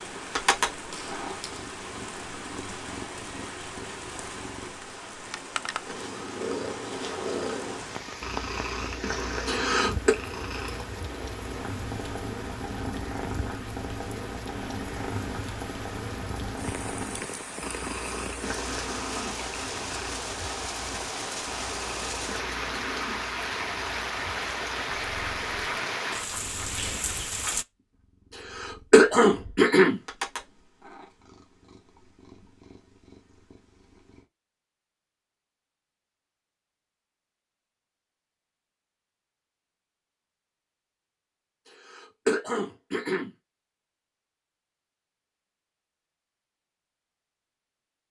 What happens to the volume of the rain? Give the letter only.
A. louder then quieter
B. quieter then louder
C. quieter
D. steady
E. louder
E.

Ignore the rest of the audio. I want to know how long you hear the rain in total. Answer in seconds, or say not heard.
28 s.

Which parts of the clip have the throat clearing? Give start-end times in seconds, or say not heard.
9.4-10.2, 28.4-30.0, 41.6-43.3.